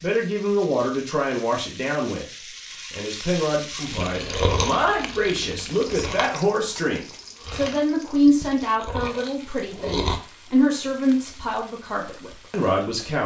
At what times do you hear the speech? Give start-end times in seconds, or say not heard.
0.0-2.2, 2.9-13.2.